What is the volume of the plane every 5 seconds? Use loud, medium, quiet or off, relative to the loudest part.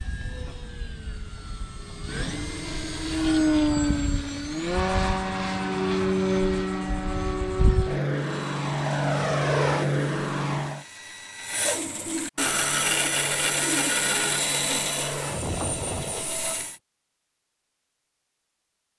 loud, loud, medium, medium.